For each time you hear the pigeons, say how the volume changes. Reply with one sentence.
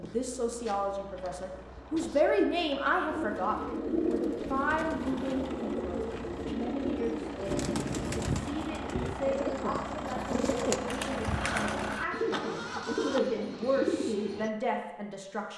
You can hear the pigeons from 3.0 to 14.5 s, at a steady volume.